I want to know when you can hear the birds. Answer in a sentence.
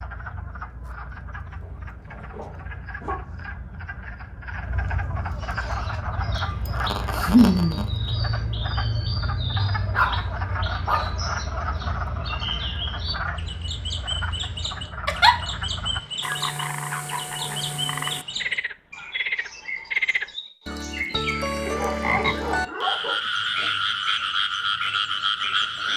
You can hear the birds from 5.3 to 25.9 s.